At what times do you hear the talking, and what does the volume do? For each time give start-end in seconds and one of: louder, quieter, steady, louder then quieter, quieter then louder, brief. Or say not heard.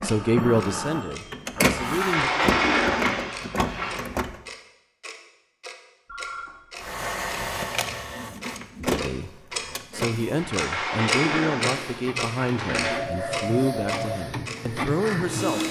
0.0-2.3 brief
8.8-15.6 steady.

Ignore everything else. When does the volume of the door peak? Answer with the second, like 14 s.
3 s.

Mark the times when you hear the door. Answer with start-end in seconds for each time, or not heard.
1.8-4.0, 10.3-13.1.